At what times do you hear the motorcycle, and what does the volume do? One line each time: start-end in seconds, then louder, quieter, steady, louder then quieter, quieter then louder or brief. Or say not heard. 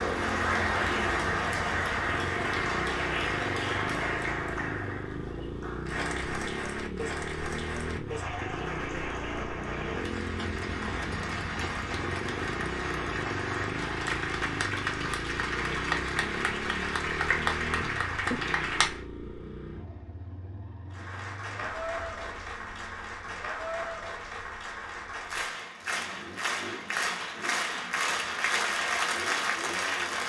0.0-30.2 quieter.